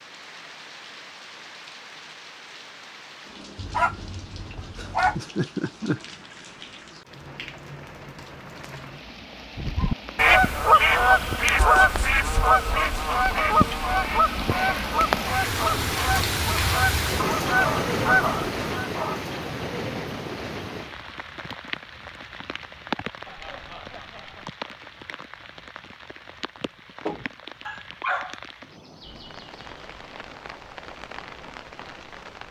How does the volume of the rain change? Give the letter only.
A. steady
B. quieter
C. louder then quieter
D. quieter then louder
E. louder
C.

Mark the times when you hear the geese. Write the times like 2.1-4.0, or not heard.
9.6-18.9.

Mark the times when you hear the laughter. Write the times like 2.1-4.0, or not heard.
4.8-6.0, 23.2-24.5.